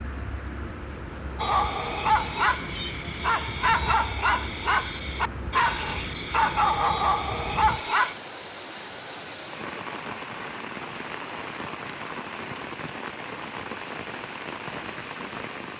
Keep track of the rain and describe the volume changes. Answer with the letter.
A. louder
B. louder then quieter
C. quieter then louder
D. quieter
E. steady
E.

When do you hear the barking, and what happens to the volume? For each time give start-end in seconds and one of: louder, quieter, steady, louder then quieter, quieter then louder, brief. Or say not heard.
1.4-8.2 steady.